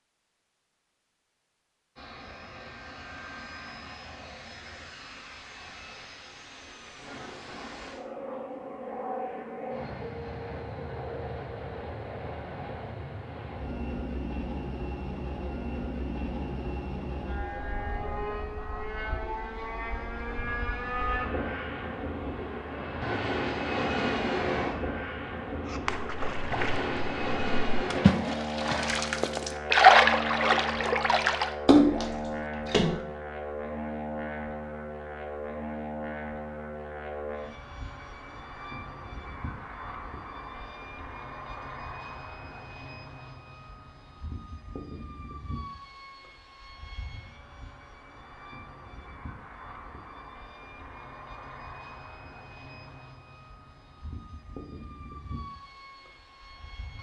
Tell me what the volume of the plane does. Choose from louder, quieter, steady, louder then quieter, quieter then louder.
louder then quieter.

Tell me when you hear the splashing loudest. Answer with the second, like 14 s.
30 s.